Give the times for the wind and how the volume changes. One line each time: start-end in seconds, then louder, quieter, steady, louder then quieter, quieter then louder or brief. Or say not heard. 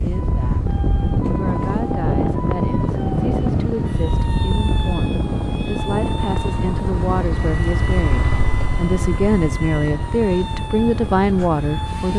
0.0-12.1 quieter.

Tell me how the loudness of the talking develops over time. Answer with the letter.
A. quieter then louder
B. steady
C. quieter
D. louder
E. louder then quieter
D.